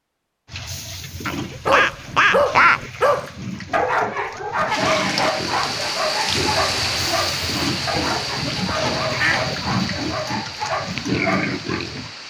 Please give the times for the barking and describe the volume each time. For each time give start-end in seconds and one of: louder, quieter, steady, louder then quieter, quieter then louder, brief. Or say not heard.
1.6-11.8 quieter.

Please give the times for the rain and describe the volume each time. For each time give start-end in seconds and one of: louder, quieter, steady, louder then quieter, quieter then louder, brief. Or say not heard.
4.7-12.2 quieter.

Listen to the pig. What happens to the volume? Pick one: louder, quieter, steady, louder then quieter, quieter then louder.
louder.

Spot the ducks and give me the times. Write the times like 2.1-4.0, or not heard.
1.2-2.9, 8.4-9.7.